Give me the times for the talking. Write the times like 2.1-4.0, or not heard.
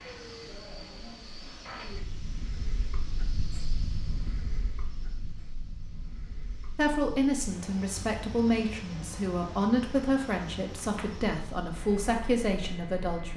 6.8-13.3.